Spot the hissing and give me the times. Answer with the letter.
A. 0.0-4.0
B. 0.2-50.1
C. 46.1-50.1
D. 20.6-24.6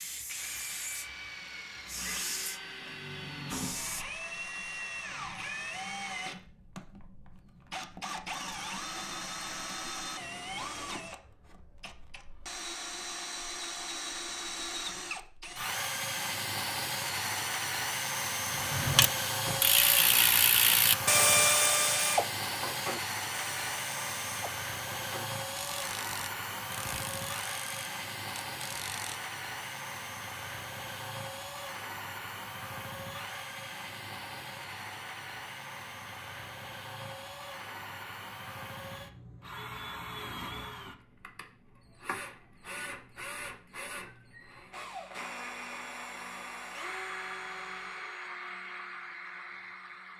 A.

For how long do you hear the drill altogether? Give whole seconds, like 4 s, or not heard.
50 s.